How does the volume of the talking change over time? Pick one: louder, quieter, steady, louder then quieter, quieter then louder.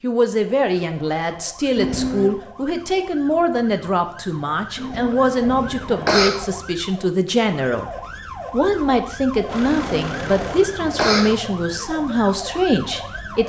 steady.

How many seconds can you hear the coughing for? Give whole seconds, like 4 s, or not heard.
4 s.